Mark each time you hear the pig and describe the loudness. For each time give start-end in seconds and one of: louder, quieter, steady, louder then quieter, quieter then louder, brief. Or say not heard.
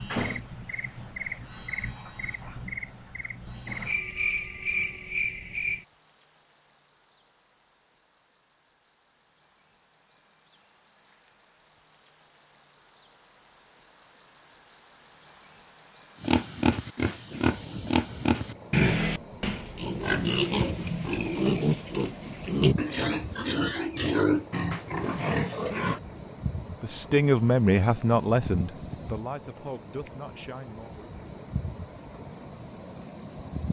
16.2-26.0 steady.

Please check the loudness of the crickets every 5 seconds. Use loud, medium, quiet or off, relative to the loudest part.
loud, medium, medium, loud, loud, loud, loud.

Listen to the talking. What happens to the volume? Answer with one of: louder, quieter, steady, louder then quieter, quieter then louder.
quieter.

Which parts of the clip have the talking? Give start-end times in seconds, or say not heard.
26.8-31.1.